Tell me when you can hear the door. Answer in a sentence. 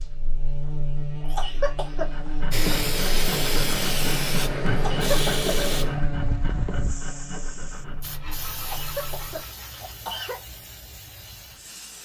The door can't be heard in this clip.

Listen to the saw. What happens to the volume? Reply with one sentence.
The loudness of the saw goes down.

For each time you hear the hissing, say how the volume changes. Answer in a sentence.
You can hear the hissing from 2.5 to 12.0 s, getting quieter.